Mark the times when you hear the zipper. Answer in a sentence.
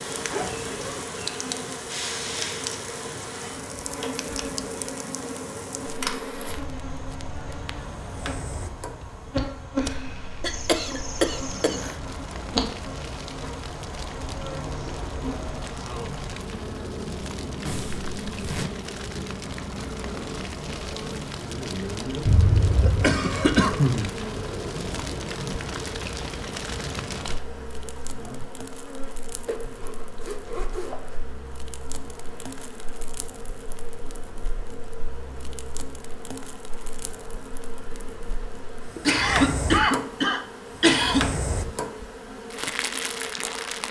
You can hear the zipper from 0.1 to 1.1 s, from 17.6 to 18.7 s and from 29.4 to 31.2 s.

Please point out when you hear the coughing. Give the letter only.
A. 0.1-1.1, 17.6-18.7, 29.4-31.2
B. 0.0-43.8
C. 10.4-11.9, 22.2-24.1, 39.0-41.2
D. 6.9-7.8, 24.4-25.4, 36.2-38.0
C.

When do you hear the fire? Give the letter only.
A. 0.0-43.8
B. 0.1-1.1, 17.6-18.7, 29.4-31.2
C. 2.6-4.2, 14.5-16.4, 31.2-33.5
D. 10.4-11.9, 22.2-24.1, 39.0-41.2
A.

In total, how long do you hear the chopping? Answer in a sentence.
You can't hear the chopping here.